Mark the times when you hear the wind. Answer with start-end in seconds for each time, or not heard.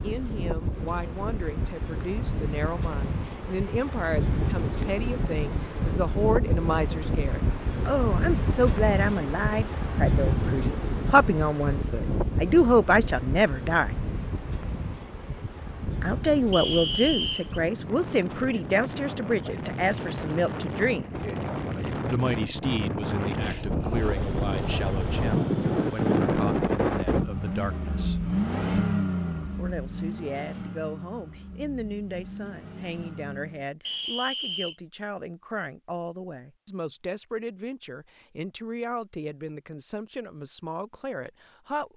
0.0-27.2.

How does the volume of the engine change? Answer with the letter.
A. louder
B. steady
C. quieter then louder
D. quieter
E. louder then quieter
E.